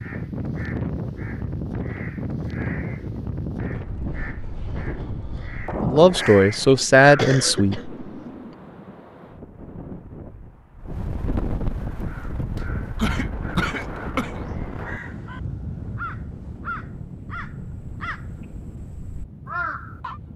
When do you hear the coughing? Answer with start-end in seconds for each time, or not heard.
7.0-8.6, 12.9-14.4.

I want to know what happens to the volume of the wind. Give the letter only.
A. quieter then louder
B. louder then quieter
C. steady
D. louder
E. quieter
E.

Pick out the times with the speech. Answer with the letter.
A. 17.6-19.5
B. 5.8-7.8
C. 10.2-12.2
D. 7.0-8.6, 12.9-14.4
B.